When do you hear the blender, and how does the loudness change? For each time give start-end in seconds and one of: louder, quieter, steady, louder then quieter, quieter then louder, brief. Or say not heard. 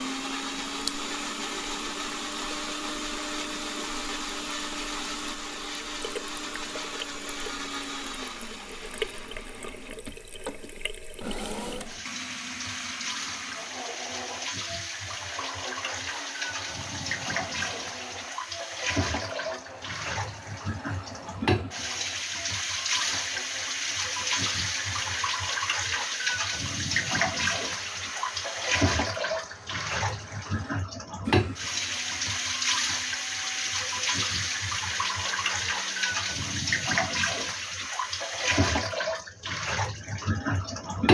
0.0-36.6 quieter.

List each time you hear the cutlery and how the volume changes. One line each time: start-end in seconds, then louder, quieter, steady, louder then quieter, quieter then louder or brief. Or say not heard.
not heard.